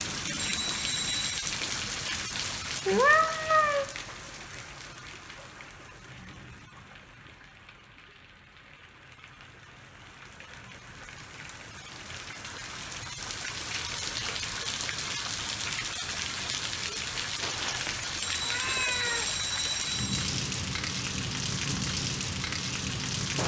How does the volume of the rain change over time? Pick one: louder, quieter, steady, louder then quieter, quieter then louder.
quieter then louder.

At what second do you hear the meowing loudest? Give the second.
3 s.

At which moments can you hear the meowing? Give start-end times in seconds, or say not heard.
2.9-3.9, 17.4-19.4.